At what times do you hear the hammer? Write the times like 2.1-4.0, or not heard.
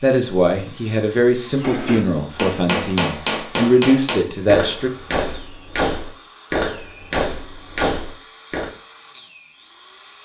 1.5-8.7.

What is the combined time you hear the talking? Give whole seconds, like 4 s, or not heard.
5 s.